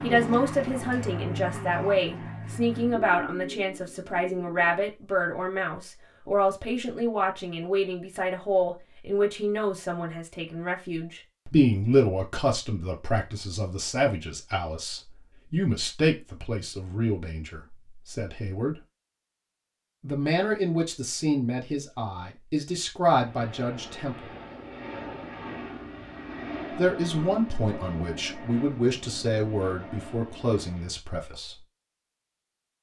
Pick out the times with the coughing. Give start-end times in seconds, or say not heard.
not heard.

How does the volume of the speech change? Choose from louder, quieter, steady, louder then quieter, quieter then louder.
steady.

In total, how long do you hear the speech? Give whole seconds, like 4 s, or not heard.
28 s.